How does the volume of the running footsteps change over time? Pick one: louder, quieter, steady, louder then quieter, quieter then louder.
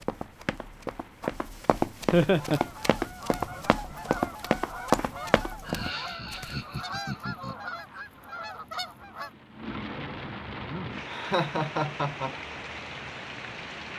louder then quieter.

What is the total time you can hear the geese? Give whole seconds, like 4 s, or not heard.
7 s.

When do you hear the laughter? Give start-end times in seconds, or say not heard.
2.1-2.6, 5.7-7.5, 11.1-12.3.